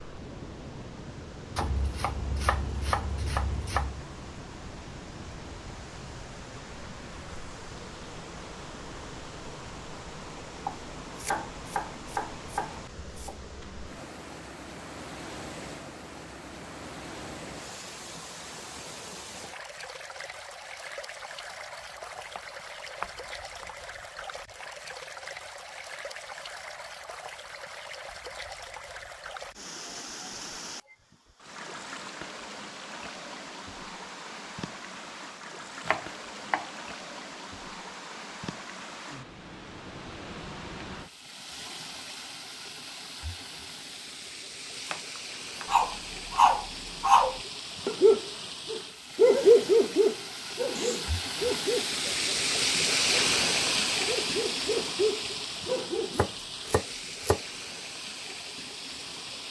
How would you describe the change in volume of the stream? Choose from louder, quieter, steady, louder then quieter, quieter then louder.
louder.